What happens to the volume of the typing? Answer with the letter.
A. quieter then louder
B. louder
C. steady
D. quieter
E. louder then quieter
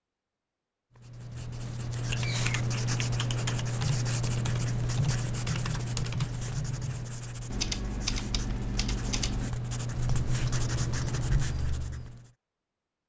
C.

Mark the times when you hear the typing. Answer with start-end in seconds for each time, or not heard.
1.6-11.9.